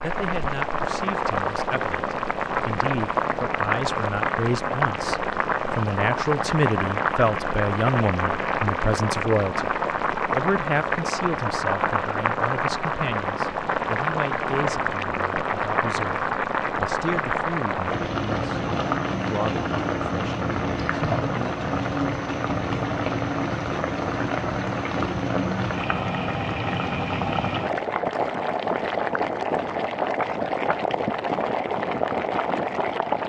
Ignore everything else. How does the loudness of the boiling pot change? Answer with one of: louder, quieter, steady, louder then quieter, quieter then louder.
steady.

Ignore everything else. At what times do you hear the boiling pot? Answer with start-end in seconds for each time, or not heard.
0.0-33.2.